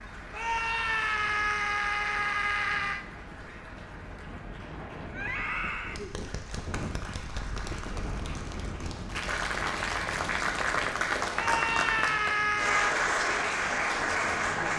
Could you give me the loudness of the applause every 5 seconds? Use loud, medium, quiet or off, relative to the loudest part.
quiet, medium, loud.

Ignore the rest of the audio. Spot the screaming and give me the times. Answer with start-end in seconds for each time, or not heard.
0.3-3.0, 5.1-6.0, 11.3-12.9.